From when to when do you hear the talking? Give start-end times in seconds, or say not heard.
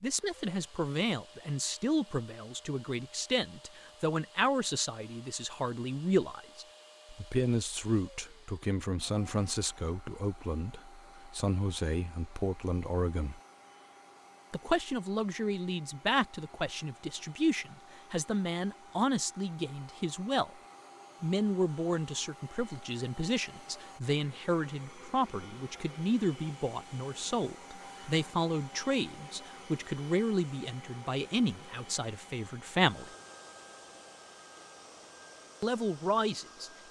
0.0-13.4, 14.5-20.5, 21.2-33.1, 35.6-36.8.